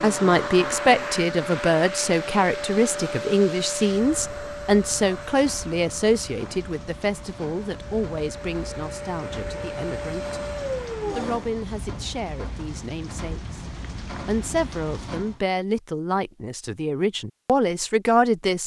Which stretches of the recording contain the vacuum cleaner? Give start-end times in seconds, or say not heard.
0.0-11.5.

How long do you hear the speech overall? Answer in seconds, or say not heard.
17 s.